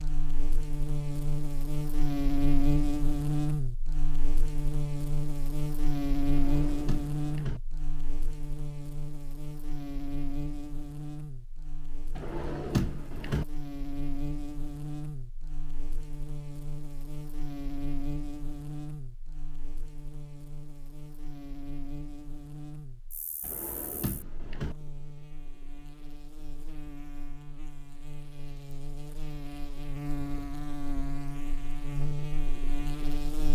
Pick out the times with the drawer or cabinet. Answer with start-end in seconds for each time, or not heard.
6.2-7.6, 12.2-13.4, 23.4-24.8.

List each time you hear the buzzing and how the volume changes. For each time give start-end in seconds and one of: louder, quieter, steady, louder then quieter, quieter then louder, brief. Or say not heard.
0.0-33.5 quieter then louder.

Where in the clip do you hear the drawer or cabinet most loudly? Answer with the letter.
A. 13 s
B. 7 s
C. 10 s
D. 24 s
A.